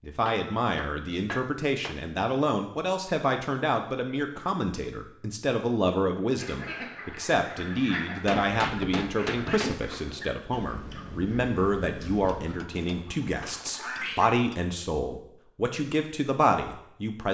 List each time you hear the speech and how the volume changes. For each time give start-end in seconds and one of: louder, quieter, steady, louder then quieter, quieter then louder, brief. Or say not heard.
0.0-17.2 steady.